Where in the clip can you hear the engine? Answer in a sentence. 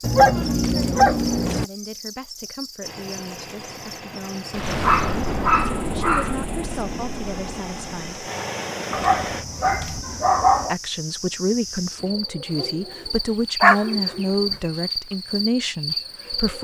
The engine can be heard from 2.8 to 9.4 s.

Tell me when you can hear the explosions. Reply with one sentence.
The explosions can be heard from 4.5 to 8.2 s.